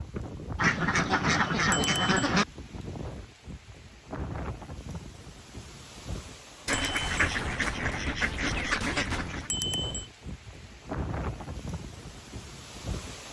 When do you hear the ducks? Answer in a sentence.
You can hear the ducks from 0.6 to 2.5 s and from 6.7 to 9.5 s.